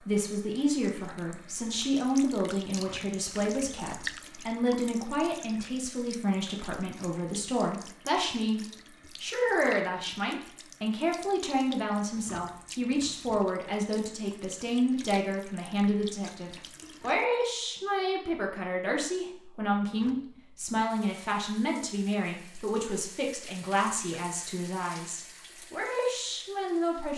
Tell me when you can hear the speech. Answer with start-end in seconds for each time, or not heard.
0.0-8.6, 9.2-27.1.